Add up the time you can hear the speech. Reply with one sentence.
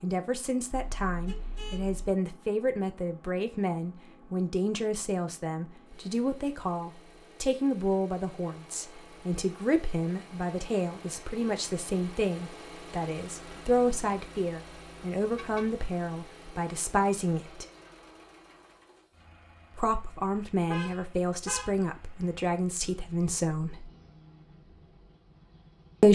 You can hear the speech for 22 seconds altogether.